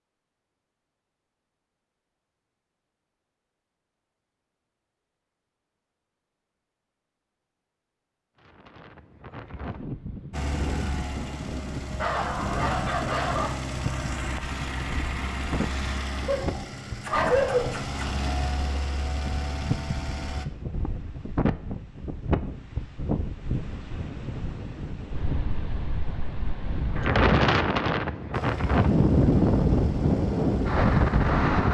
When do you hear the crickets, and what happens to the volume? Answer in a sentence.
The crickets can't be heard in this clip.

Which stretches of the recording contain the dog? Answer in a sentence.
You can hear the dog from 12.0 to 13.5 s and from 16.2 to 18.1 s.